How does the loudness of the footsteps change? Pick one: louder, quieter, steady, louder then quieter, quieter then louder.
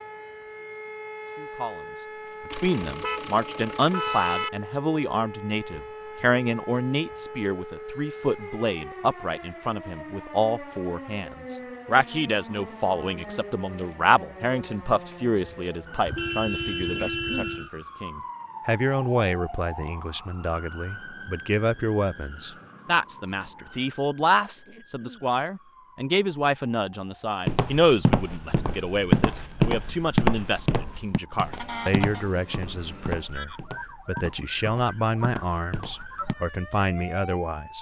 quieter.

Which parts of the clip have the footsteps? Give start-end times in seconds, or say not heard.
27.4-36.4.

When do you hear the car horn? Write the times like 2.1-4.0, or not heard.
2.5-4.5, 16.1-17.7, 31.5-32.2.